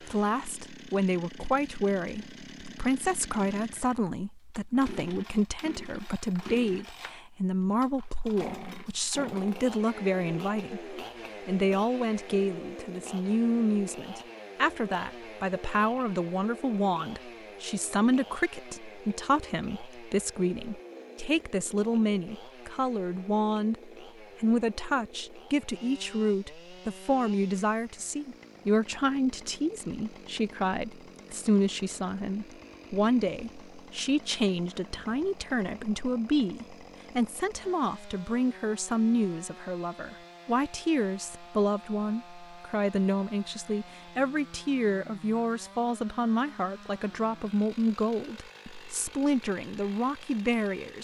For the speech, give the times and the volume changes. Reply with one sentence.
You can hear the speech from 0.1 to 50.9 s, at a steady volume.